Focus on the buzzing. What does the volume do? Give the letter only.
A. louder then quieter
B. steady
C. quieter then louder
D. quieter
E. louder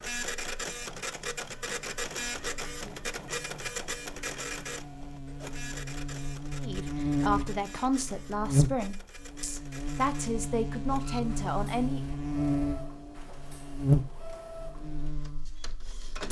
E.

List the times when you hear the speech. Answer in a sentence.
The speech can be heard from 6.5 to 12.0 s.